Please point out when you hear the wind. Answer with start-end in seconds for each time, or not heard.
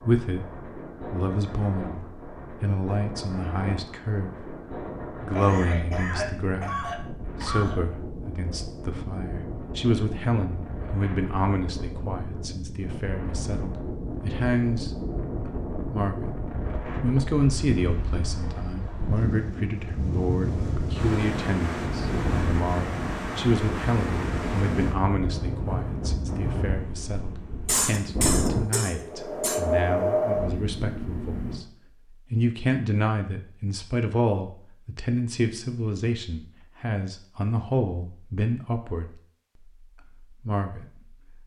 0.0-31.6.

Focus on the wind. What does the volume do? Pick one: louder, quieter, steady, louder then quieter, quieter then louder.
louder.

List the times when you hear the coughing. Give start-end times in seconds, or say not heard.
5.3-7.8, 27.6-29.6.